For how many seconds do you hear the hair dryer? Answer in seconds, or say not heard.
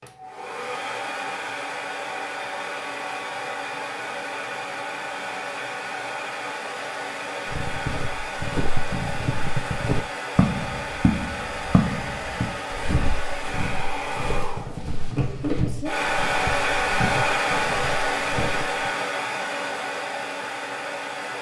21 s.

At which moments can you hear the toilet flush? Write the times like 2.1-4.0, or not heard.
not heard.